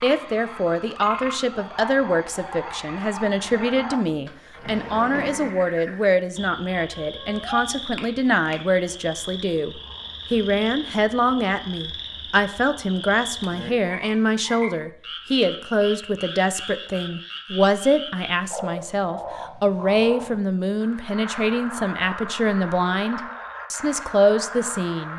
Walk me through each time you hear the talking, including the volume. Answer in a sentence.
You can hear the talking from 0.0 to 25.1 s, at a steady volume.